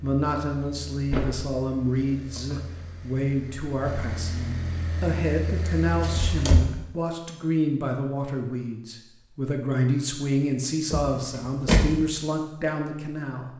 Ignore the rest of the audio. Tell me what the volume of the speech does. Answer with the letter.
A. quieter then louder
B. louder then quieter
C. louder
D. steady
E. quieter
D.